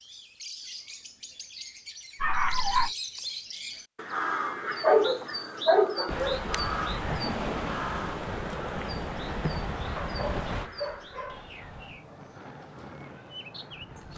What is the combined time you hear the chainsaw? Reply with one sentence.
The chainsaw can't be heard in this clip.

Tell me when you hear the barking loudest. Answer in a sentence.
The volume of the barking peaks at 5 seconds.